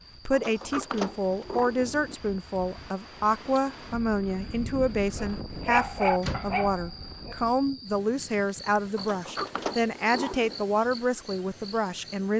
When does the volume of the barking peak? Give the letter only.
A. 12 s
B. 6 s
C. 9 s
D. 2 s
B.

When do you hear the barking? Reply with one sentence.
The barking can be heard from 5.2 to 7.5 s.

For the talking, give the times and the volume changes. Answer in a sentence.
You can hear the talking from 0.2 to 12.3 s, at a steady volume.